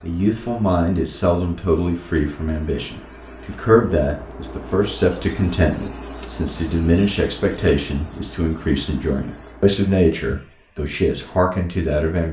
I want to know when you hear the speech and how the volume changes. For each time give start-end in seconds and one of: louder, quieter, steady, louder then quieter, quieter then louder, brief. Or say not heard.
0.0-12.2 steady.